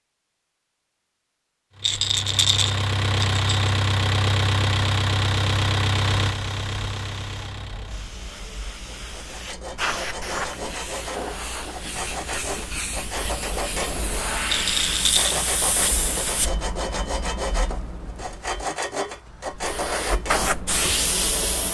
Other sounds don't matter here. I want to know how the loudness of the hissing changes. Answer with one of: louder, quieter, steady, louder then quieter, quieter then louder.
louder.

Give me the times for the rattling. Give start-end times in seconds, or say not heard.
1.8-3.7, 14.5-15.4.